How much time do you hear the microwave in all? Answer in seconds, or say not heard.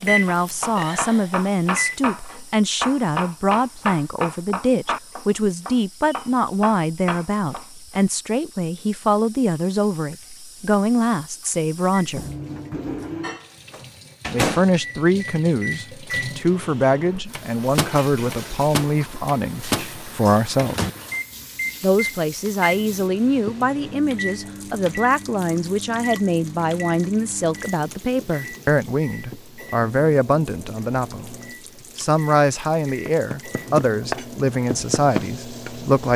26 s.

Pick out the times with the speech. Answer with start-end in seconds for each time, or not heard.
0.0-12.2, 14.3-20.8, 21.8-31.4, 31.9-36.1.